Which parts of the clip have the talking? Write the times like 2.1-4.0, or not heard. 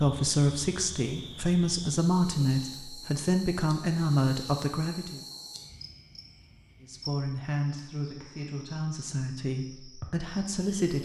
0.0-5.2, 6.8-11.0.